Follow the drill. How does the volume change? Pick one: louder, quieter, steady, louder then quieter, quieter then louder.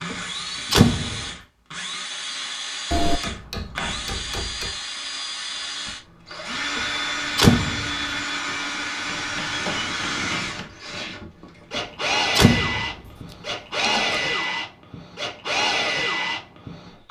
louder.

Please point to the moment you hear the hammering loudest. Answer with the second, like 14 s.
3 s.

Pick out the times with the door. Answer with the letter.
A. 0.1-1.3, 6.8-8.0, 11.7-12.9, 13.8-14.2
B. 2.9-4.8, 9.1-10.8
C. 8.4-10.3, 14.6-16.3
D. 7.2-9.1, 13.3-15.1
A.